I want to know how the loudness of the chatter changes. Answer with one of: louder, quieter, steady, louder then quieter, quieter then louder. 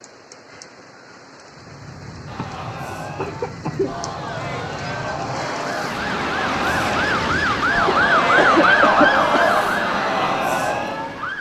louder.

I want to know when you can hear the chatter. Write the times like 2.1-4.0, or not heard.
2.2-11.3.